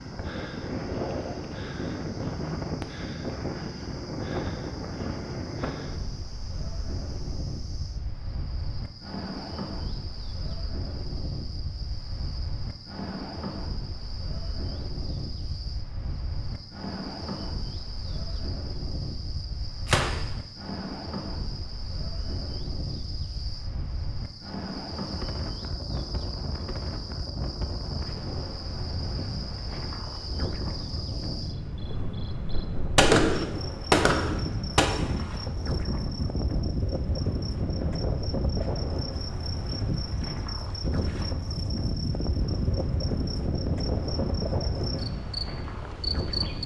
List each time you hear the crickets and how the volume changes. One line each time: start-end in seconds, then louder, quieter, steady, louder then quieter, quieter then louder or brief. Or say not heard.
0.0-46.6 louder.